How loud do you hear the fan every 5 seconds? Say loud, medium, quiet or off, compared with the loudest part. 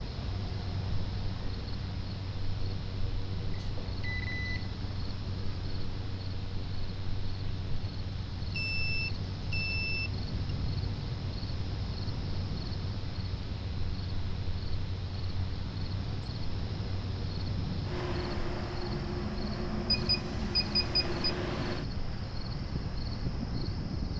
medium, medium, medium, loud, loud.